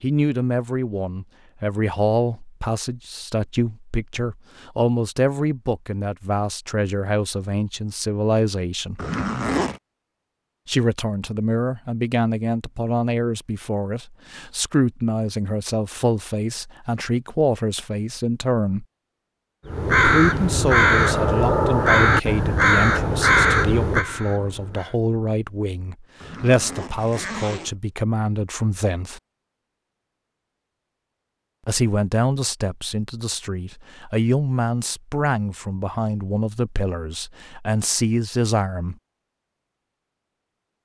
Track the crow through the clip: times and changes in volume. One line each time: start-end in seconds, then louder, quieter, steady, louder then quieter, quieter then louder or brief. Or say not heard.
19.6-24.9 quieter.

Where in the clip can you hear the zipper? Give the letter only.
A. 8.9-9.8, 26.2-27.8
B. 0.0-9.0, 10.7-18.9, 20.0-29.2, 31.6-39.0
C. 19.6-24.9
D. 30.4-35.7
A.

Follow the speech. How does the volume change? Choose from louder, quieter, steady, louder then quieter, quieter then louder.
steady.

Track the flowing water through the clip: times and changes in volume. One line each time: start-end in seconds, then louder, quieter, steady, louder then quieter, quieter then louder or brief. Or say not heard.
not heard.